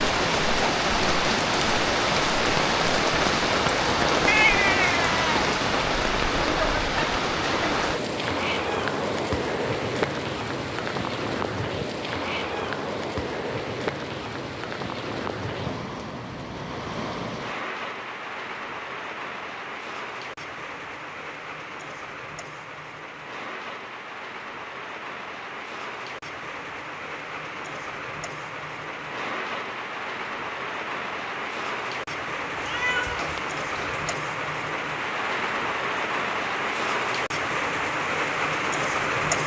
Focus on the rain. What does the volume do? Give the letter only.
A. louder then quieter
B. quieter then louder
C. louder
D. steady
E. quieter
B.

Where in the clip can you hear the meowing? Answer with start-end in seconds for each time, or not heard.
4.2-5.5, 32.5-34.1.